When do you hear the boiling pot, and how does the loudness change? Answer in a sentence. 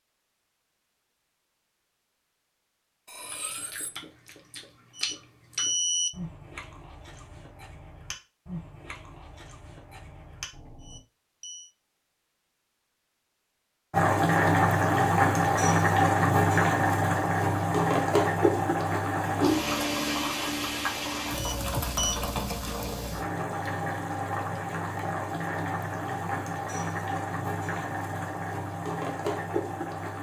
You can hear the boiling pot from 13.9 to 30.1 s, getting quieter.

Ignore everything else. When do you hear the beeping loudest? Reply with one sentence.
The loudest moment of the beeping is at 6 seconds.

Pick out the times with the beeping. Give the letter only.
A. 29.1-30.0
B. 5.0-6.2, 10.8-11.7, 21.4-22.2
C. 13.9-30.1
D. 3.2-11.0
B.